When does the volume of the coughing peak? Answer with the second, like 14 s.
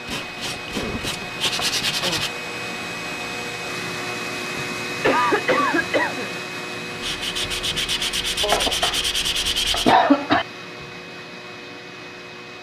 10 s.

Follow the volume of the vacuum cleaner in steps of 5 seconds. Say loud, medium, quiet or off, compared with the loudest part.
loud, loud, medium.